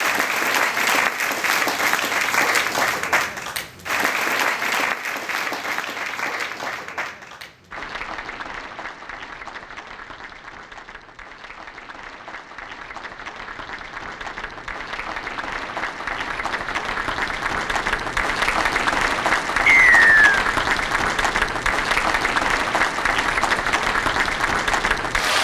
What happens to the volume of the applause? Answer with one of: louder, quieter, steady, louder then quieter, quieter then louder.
quieter then louder.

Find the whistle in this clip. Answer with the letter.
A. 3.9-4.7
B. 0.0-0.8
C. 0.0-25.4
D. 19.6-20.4
D.